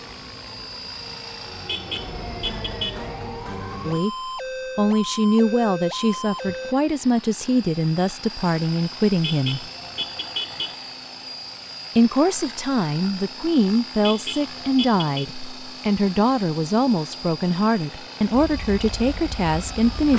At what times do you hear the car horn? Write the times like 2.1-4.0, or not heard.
1.6-3.0, 9.2-10.8, 14.0-15.2.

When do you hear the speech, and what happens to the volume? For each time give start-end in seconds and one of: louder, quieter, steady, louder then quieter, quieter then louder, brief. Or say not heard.
3.9-9.7 steady
11.9-20.1 steady.